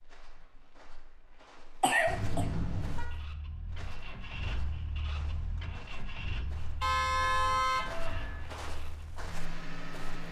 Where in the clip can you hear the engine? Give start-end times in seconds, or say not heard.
2.9-10.2.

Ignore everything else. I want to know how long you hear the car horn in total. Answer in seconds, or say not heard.
3 s.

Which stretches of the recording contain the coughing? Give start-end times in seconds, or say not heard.
1.8-2.5.